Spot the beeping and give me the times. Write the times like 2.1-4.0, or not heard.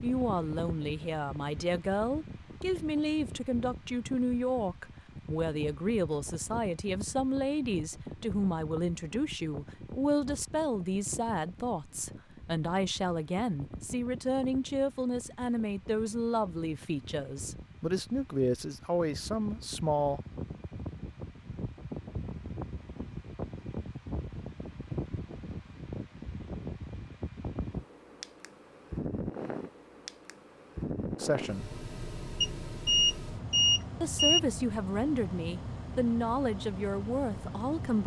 32.4-34.4.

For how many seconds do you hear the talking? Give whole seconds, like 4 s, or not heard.
25 s.